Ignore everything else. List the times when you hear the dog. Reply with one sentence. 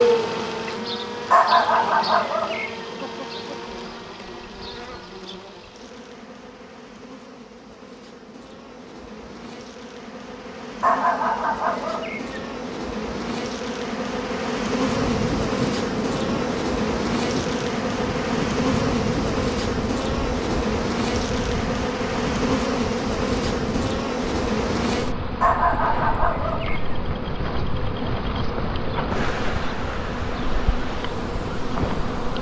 The dog can be heard from 1.3 to 2.8 s, from 10.8 to 12.5 s and from 25.4 to 26.9 s.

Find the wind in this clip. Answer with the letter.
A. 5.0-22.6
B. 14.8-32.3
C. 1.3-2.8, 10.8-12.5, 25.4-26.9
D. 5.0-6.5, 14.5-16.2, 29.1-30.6
B.